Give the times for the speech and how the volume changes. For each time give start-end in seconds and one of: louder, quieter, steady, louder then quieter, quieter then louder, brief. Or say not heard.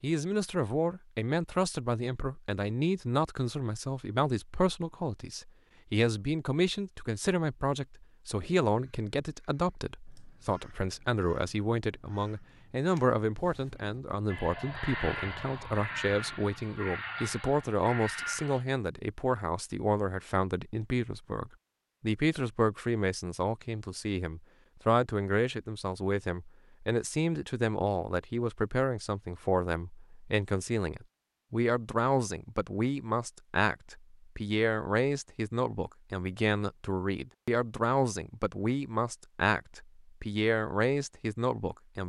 0.0-42.0 steady.